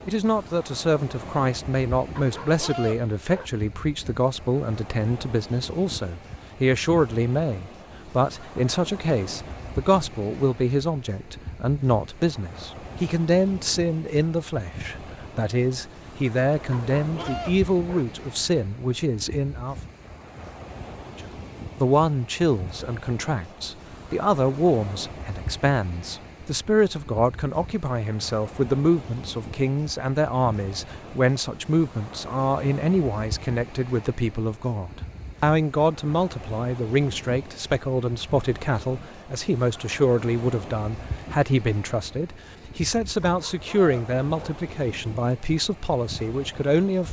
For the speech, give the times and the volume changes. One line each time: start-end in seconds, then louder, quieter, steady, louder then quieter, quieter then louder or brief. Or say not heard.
0.1-19.8 steady
21.1-47.0 steady.